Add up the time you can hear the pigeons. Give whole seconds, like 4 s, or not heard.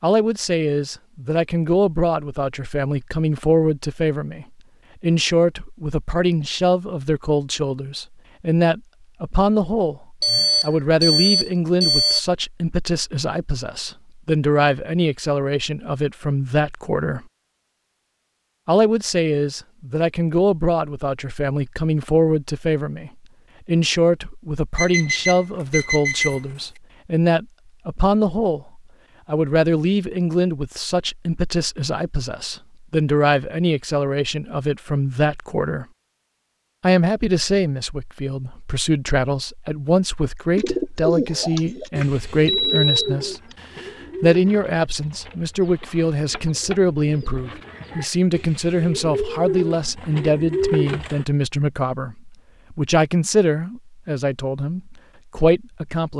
11 s.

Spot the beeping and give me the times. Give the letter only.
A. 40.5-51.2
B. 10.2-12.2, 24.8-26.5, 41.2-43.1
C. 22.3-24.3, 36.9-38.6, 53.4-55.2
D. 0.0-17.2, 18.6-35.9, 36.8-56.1
B.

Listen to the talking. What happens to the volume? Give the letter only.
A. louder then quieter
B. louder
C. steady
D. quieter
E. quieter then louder
C.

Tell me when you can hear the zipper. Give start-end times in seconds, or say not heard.
not heard.